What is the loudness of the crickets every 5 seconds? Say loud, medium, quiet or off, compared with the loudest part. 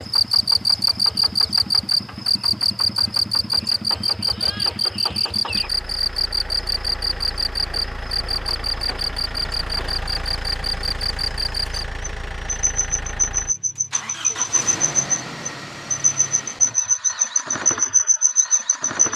loud, medium, medium, loud.